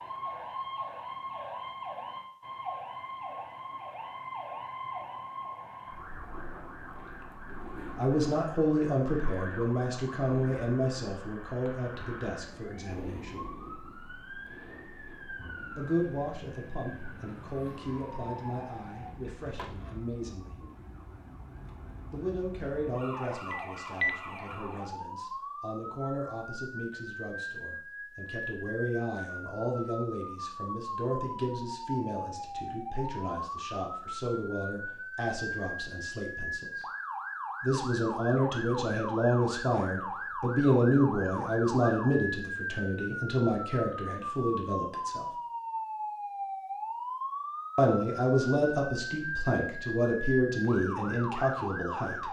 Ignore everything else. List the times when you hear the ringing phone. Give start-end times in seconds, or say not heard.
23.5-24.1.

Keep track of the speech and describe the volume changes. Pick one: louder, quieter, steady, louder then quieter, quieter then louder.
quieter then louder.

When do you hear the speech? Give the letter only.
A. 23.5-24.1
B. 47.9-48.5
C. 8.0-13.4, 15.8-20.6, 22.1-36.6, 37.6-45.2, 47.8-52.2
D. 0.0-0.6
C.